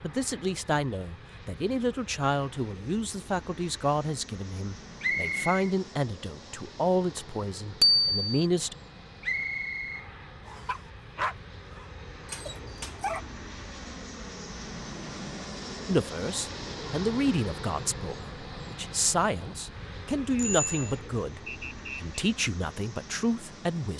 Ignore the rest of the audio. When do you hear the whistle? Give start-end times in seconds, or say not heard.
5.0-5.7, 9.2-10.8, 21.4-22.1.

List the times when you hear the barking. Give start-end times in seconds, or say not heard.
10.7-13.2.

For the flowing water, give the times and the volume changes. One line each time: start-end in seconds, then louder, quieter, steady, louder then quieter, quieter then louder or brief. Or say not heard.
not heard.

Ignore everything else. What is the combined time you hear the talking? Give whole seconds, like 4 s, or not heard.
16 s.